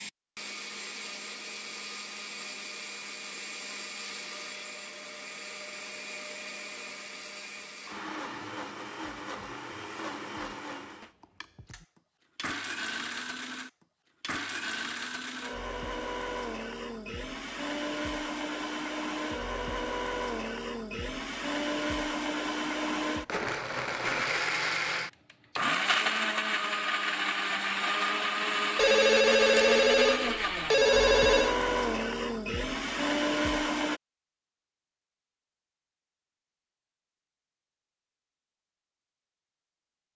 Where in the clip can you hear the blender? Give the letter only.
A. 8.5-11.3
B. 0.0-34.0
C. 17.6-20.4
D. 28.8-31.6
B.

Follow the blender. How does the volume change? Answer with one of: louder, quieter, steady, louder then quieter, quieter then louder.
louder.